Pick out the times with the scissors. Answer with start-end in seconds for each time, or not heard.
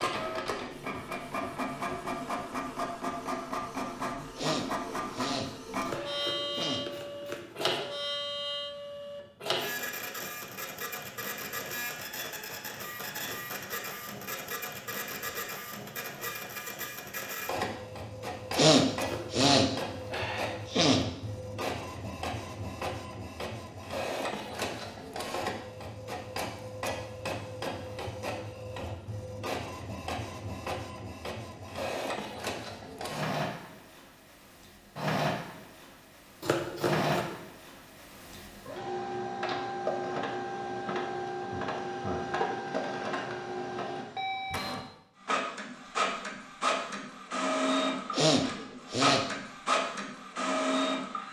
5.8-7.7, 18.9-19.4, 36.4-37.4.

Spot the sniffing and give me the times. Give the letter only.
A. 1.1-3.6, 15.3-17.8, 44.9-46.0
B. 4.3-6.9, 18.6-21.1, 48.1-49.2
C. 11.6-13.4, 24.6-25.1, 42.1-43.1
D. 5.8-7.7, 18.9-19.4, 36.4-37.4
B.